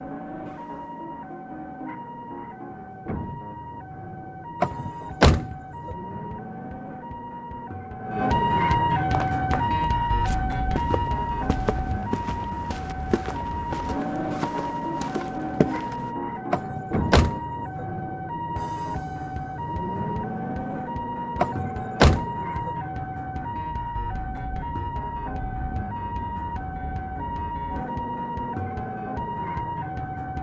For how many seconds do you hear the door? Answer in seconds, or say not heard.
4 s.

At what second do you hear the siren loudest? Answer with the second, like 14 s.
9 s.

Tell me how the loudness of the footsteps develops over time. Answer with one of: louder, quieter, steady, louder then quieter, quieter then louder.
louder.